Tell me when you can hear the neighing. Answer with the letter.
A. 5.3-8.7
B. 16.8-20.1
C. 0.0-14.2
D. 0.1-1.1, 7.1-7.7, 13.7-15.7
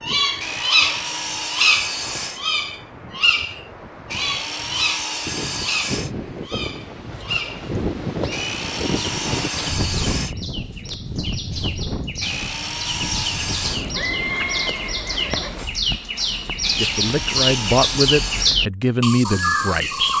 D.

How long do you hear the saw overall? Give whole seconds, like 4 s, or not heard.
10 s.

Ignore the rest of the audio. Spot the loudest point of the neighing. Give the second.
14 s.